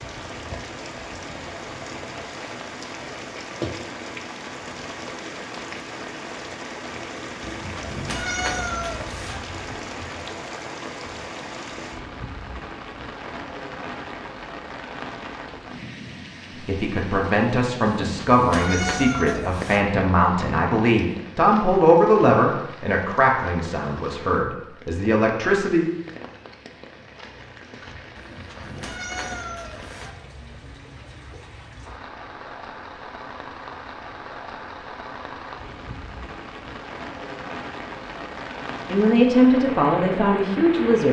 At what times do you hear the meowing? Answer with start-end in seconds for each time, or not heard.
7.4-9.4, 18.0-19.9, 28.1-30.1.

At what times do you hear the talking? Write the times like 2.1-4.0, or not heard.
16.6-25.9, 38.9-41.0.